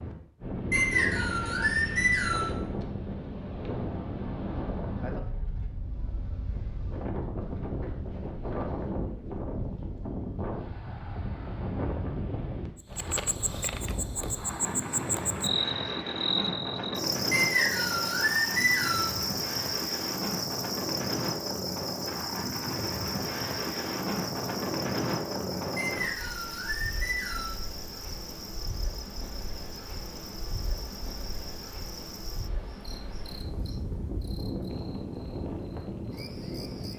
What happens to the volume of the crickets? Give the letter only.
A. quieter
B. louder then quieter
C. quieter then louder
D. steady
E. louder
A.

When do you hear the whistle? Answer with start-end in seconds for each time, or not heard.
0.7-2.5, 17.3-19.1, 25.8-27.6.